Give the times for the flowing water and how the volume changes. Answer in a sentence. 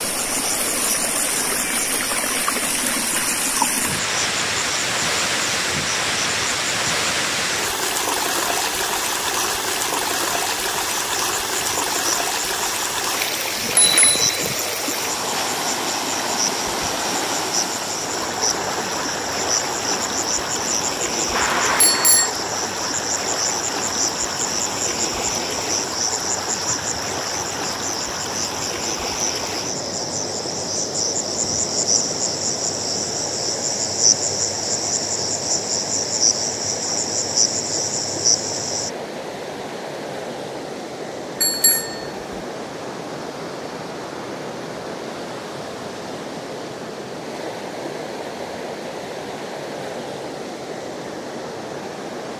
The flowing water can be heard from 0.0 to 52.3 s, getting quieter.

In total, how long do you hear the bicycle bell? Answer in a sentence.
You can hear the bicycle bell for 3 seconds altogether.